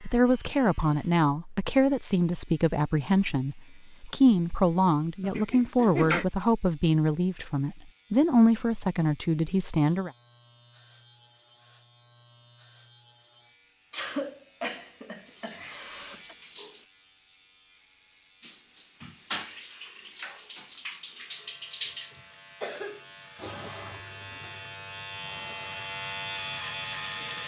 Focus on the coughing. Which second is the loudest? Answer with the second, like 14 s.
6 s.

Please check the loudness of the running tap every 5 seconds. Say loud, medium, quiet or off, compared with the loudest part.
off, off, off, loud, loud, quiet.